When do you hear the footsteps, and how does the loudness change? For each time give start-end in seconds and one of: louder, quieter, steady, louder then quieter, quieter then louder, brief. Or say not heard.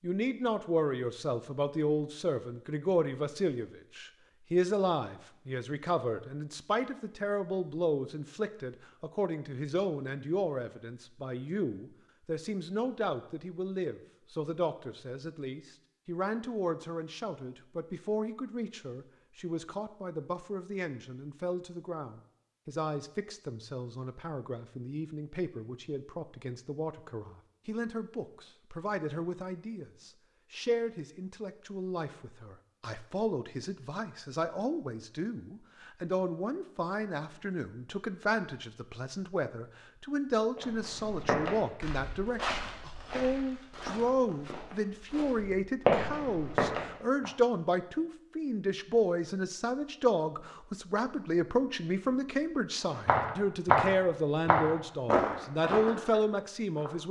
40.5-47.3 quieter then louder
52.9-57.0 quieter.